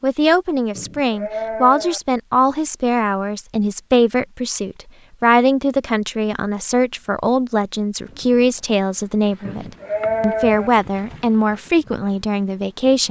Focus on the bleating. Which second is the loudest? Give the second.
10 s.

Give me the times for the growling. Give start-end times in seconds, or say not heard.
not heard.